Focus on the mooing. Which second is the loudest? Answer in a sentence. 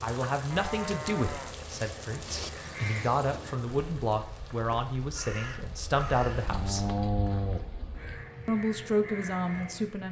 The loudest moment of the mooing is at 7 seconds.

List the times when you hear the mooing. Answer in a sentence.
You can hear the mooing from 0.5 to 2.5 s and from 6.2 to 8.2 s.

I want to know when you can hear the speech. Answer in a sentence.
You can hear the speech from 0.0 to 6.8 s and from 8.4 to 10.0 s.